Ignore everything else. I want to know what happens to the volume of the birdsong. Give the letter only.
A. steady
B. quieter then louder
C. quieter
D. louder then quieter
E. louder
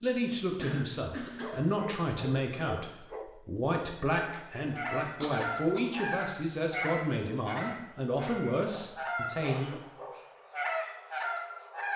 B.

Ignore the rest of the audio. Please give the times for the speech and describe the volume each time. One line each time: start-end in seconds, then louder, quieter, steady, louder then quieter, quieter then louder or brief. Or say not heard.
0.0-9.7 steady.